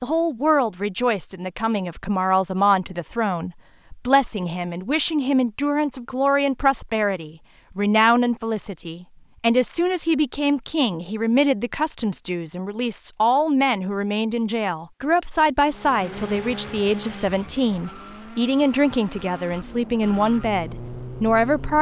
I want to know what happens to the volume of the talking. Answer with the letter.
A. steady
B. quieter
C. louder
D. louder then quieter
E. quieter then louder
A.